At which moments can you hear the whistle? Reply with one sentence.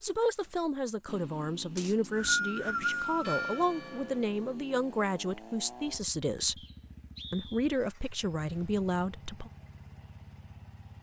The whistle can be heard from 1.8 to 3.6 s and from 6.5 to 7.8 s.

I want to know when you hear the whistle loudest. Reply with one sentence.
The loudest moment of the whistle is at 2 seconds.